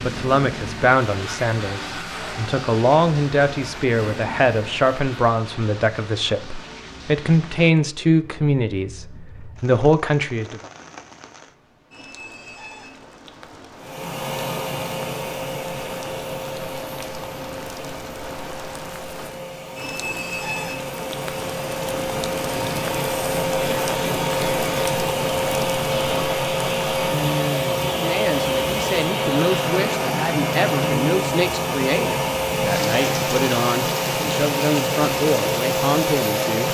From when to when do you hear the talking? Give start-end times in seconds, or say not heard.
0.0-10.6, 27.9-36.6.